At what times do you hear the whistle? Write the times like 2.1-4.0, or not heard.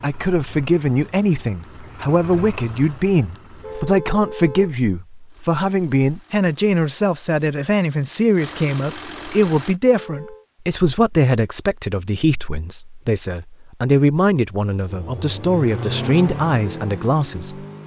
not heard.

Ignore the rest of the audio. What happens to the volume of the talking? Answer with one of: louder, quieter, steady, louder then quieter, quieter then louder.
steady.